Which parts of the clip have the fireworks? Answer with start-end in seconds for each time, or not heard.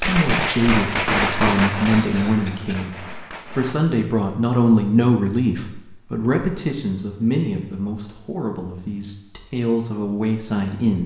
0.0-3.8.